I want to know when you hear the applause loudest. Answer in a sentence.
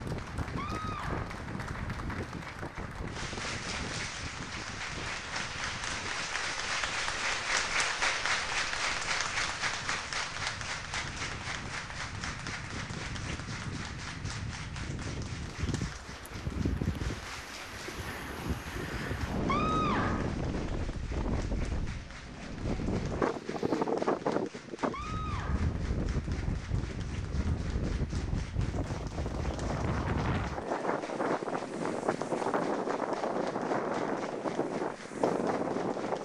The volume of the applause peaks at 8 seconds.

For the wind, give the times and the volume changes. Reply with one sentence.
You can hear the wind from 0.0 to 36.2 s, getting louder.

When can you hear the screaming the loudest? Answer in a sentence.
The volume of the screaming peaks at 20 seconds.